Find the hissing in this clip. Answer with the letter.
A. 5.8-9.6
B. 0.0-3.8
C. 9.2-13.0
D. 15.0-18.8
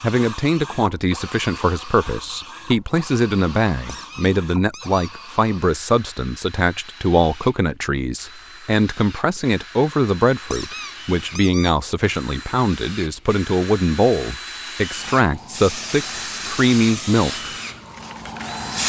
D.